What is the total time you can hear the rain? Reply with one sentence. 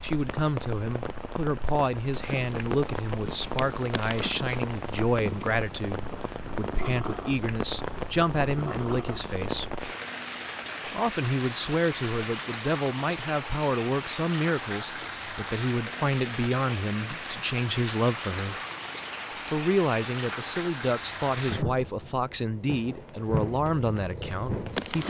You can hear the rain for 25 seconds altogether.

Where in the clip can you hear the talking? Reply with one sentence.
The talking can be heard from 0.0 to 9.8 s, from 10.8 to 18.6 s and from 19.4 to 25.0 s.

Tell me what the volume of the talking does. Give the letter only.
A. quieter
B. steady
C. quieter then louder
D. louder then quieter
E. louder
B.